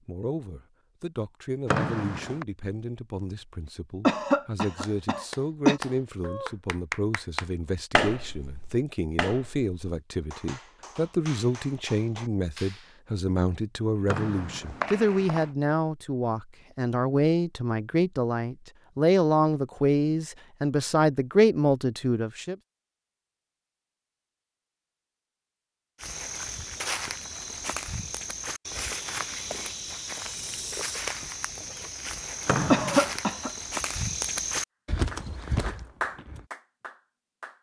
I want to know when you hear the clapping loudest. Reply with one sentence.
The loudest moment of the clapping is at 8 seconds.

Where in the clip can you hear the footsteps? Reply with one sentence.
You can hear the footsteps from 26.0 to 36.5 s.